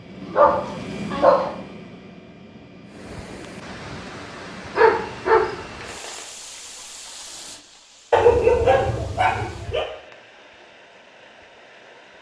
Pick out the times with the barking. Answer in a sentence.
The barking can be heard from 0.2 to 1.5 s, from 4.8 to 6.2 s and from 8.1 to 9.8 s.